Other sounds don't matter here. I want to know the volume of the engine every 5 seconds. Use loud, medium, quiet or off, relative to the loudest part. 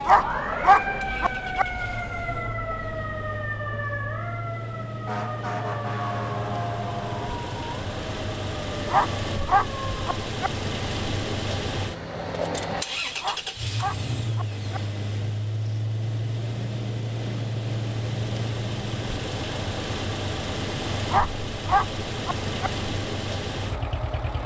medium, loud, loud, loud, loud.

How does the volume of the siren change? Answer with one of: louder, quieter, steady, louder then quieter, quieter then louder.
quieter.